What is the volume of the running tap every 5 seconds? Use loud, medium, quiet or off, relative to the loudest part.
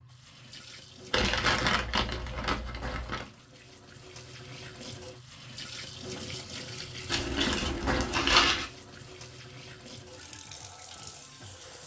medium, loud, medium.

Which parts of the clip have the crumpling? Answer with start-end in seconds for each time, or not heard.
1.1-3.2, 7.0-8.7.